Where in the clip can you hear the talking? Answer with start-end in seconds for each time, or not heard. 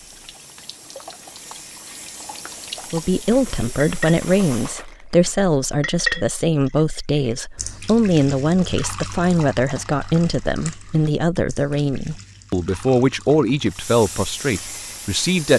2.9-15.5.